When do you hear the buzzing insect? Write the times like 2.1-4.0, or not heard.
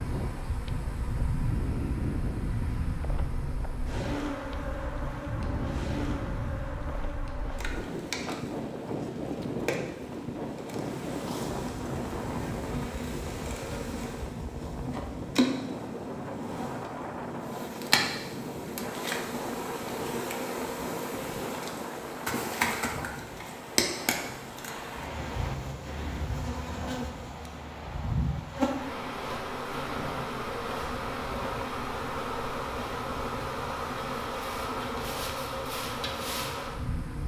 0.0-37.2.